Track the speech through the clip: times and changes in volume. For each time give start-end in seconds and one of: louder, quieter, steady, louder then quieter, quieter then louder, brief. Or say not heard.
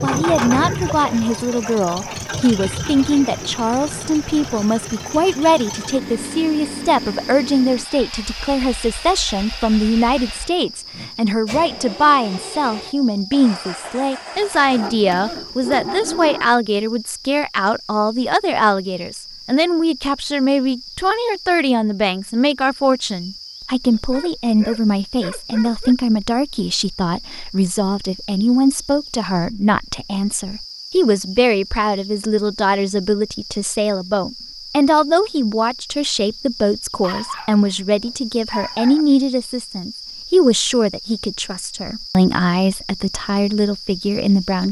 0.0-44.6 steady.